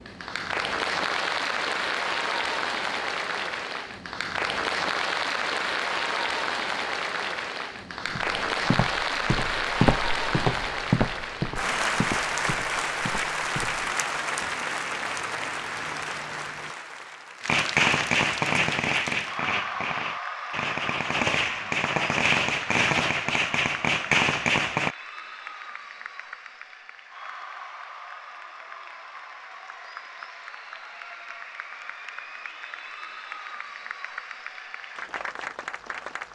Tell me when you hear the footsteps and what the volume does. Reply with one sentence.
You can hear the footsteps from 8.1 to 13.8 s, getting louder then quieter.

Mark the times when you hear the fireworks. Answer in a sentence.
You can hear the fireworks from 17.4 to 24.9 s.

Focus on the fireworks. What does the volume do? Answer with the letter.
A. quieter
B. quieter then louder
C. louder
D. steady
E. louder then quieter
B.